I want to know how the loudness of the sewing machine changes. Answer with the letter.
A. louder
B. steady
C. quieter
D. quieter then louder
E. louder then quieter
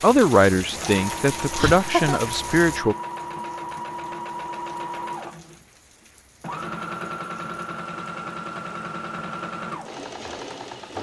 B.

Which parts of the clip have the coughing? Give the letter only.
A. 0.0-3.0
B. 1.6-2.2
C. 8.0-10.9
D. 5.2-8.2
B.